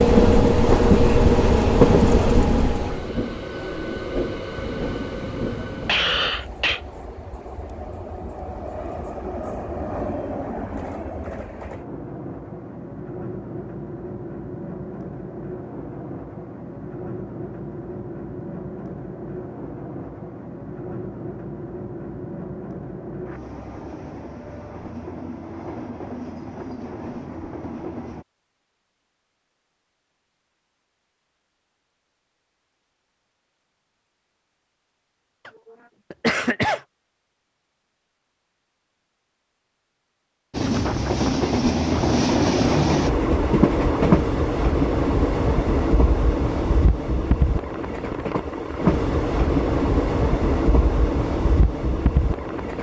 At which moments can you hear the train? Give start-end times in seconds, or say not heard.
0.0-28.2, 40.5-52.7.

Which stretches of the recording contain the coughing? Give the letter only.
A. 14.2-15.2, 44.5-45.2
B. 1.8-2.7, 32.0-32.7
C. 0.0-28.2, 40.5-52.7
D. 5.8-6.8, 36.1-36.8
D.